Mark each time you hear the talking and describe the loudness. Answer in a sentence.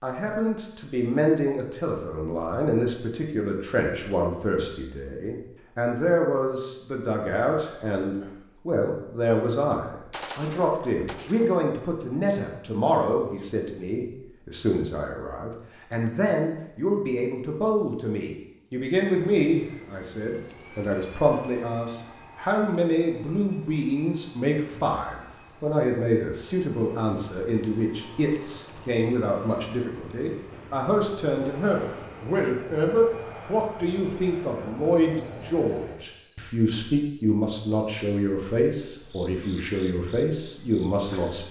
You can hear the talking from 0.0 to 41.4 s, at a steady volume.